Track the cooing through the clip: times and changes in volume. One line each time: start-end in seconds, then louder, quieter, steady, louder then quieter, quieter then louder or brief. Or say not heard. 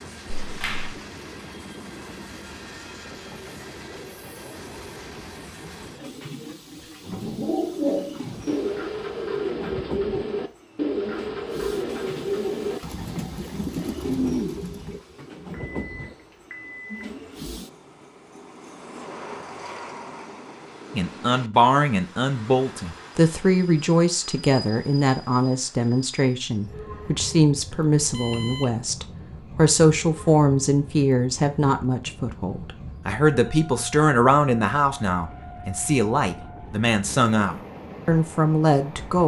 6.8-15.0 steady.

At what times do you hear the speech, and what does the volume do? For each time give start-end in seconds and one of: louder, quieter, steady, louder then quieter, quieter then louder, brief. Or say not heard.
20.9-39.2 steady.